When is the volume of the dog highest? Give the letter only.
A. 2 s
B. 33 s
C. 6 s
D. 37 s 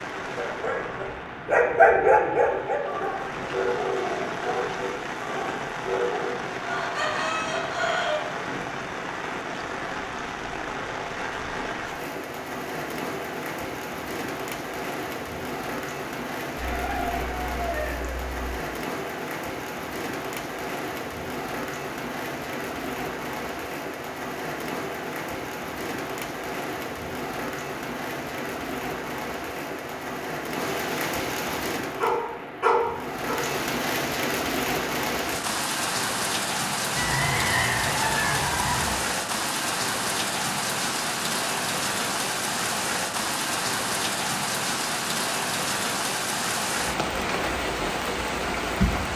A.